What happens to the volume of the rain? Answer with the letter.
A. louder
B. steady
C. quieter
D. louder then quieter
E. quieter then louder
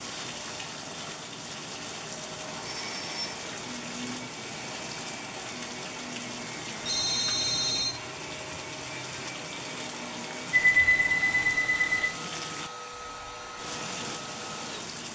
B.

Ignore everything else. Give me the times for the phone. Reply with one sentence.
The phone can be heard from 2.9 to 3.4 s, from 6.8 to 8.0 s and from 10.5 to 12.1 s.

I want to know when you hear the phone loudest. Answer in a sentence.
The volume of the phone peaks at 11 seconds.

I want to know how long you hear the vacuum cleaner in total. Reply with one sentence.
You can hear the vacuum cleaner for 15 seconds altogether.